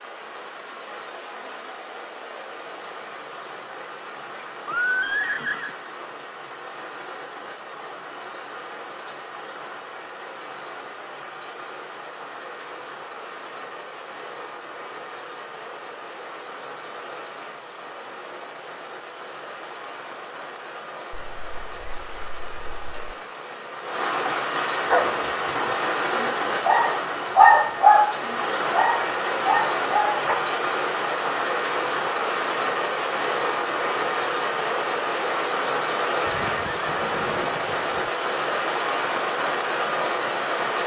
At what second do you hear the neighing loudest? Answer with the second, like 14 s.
5 s.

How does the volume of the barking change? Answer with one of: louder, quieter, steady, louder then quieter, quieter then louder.
louder then quieter.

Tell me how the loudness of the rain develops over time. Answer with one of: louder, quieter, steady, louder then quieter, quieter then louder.
louder.